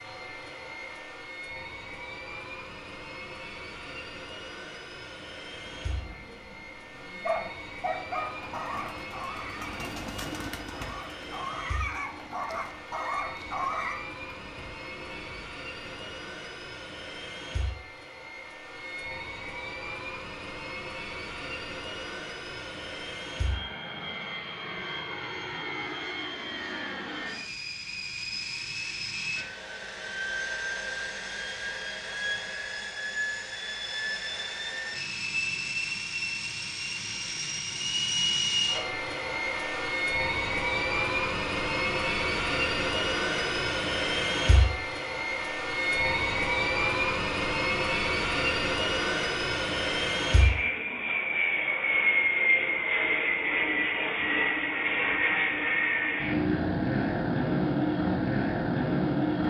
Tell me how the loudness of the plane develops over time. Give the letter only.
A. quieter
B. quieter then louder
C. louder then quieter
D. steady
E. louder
E.